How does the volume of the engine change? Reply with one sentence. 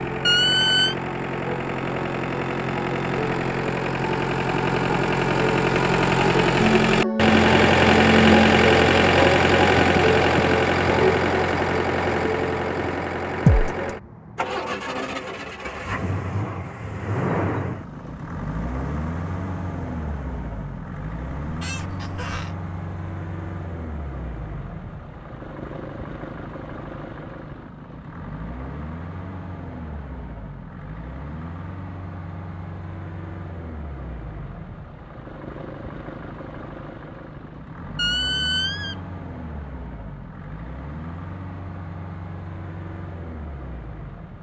The loudness of the engine goes down.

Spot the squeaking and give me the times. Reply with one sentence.
You can hear the squeaking from 0.2 to 0.9 s, from 21.4 to 22.5 s and from 38.0 to 39.0 s.